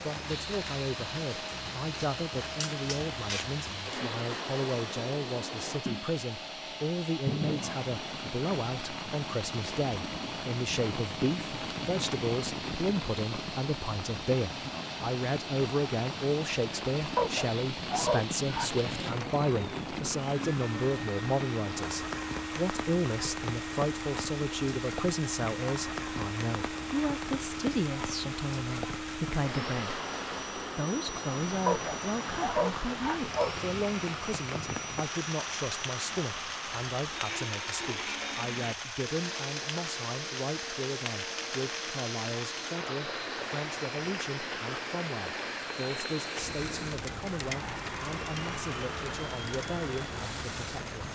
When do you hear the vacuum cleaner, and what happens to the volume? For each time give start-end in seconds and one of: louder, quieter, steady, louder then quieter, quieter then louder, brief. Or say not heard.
0.0-50.9 steady.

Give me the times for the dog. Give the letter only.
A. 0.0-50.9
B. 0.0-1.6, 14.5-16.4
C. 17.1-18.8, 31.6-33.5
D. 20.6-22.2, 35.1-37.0
C.